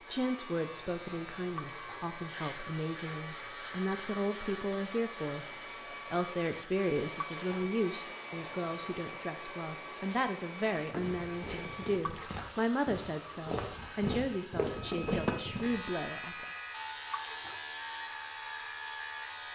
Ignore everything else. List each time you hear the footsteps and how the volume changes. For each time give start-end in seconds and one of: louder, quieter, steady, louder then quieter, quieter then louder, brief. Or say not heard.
10.8-15.8 louder.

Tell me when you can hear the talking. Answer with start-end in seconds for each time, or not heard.
0.1-16.4.